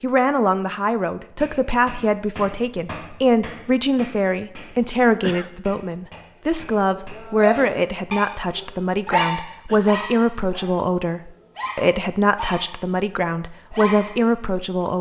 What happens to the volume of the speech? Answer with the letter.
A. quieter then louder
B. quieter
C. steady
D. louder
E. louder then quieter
C.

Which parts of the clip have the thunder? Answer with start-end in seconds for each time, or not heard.
not heard.